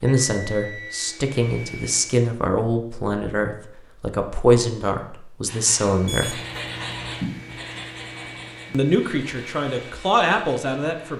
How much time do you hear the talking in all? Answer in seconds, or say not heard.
9 s.